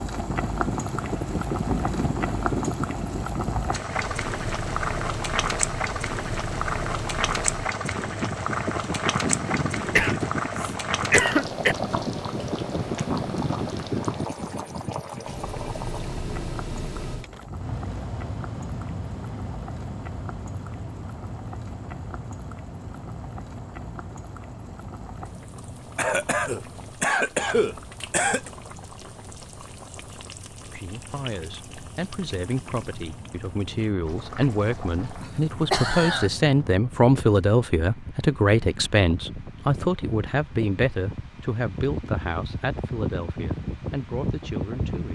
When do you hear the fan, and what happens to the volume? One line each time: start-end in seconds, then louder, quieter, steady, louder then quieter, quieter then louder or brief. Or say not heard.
0.1-45.1 quieter then louder.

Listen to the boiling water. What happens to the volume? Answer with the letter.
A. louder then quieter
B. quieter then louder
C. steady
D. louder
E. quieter
E.